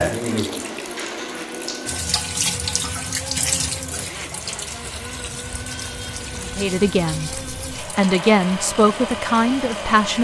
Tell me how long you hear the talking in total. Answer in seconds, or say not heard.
4 s.